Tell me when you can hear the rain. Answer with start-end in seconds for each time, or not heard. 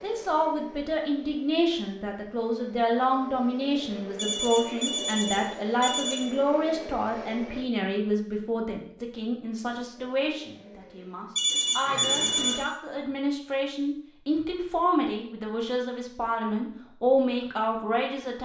not heard.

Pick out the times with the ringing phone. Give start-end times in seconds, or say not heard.
4.2-6.2, 11.3-12.6.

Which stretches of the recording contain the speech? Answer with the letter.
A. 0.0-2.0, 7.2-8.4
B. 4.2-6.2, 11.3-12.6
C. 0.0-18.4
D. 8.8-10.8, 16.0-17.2
C.